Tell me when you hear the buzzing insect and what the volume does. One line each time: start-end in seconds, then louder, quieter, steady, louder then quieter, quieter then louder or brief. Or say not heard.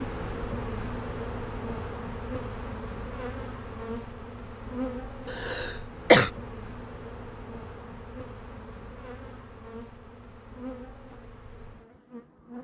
0.0-12.5 quieter.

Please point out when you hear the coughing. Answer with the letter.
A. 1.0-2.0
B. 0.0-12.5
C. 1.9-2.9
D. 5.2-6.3
D.